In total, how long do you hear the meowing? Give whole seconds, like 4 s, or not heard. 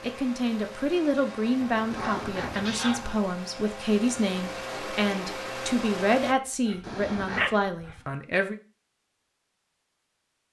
2 s.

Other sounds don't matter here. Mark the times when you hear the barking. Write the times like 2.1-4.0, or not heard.
1.6-3.2, 6.7-8.0.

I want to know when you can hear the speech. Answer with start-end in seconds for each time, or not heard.
0.0-8.6.